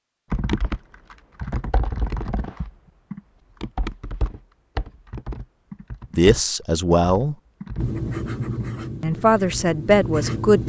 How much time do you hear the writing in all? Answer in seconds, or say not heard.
3 s.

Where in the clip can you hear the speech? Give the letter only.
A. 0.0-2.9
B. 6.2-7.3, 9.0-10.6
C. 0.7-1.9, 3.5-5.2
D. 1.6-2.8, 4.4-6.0
B.